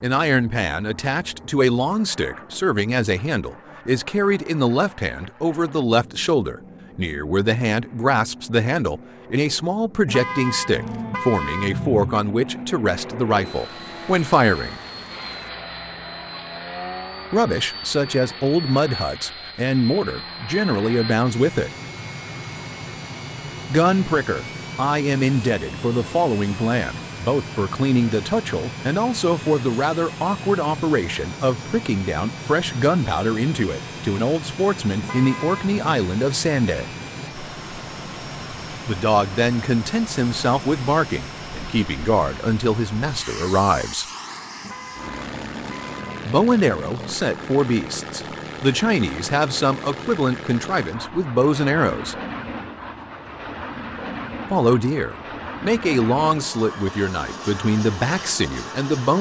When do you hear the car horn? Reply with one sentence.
The car horn can be heard from 10.1 to 12.2 s, from 35.0 to 35.8 s and from 44.6 to 46.2 s.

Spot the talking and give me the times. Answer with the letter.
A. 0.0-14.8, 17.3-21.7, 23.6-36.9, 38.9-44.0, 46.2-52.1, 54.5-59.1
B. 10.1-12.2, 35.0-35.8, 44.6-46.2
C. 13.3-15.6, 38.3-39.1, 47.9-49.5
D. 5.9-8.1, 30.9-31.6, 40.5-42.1
A.